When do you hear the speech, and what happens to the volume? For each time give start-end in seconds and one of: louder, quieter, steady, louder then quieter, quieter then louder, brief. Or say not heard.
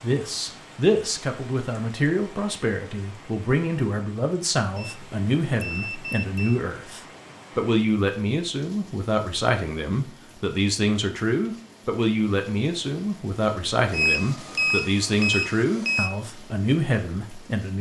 0.0-17.7 steady.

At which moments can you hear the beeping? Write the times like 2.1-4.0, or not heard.
4.8-6.5, 13.9-16.1.